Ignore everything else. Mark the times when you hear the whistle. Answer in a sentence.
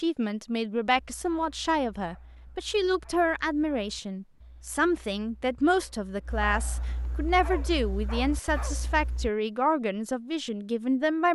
The whistle can't be heard in this clip.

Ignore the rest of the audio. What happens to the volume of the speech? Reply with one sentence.
The loudness of the speech stays about the same.